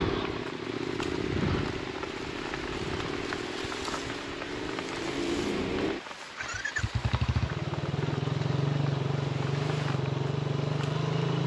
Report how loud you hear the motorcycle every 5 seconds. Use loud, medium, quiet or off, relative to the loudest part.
medium, loud, loud.